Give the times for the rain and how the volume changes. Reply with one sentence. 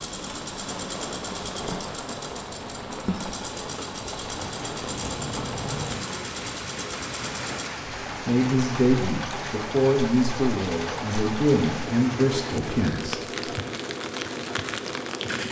You can hear the rain from 0.0 to 15.4 s, at a steady volume.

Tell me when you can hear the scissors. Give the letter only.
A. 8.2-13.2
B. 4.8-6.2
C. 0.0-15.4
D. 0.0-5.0
B.